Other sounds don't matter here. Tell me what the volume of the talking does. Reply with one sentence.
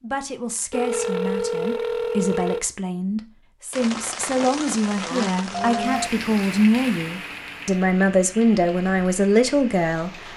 The volume of the talking goes up.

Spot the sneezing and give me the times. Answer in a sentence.
You can't hear the sneezing here.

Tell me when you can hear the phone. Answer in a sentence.
The phone can be heard from 0.7 to 2.6 s and from 5.5 to 6.3 s.